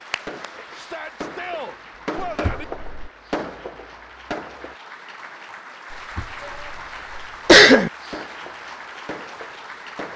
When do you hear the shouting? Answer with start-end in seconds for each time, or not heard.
0.8-2.6, 6.3-7.0.